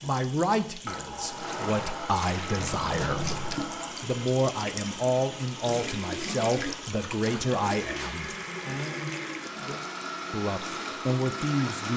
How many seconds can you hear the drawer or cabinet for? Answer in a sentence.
You can hear the drawer or cabinet for 2 seconds altogether.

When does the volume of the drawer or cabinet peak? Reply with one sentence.
The volume of the drawer or cabinet peaks at 3 seconds.